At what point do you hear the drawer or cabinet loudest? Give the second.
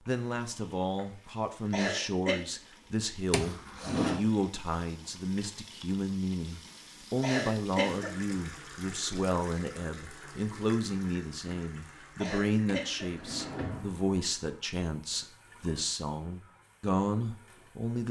4 s.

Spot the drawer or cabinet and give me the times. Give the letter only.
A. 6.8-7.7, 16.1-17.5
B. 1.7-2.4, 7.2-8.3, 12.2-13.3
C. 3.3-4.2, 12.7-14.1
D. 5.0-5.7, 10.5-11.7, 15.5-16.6
C.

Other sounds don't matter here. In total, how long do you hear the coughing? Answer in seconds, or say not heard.
3 s.